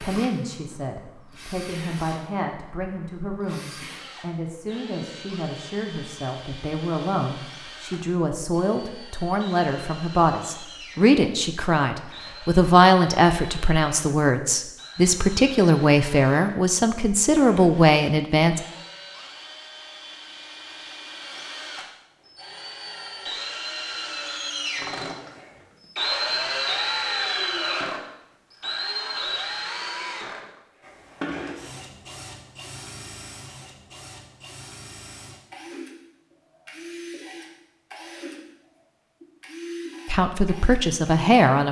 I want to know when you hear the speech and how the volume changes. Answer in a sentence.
You can hear the speech from 0.0 to 18.6 s, getting louder; and briefly from 40.0 to 41.6 s.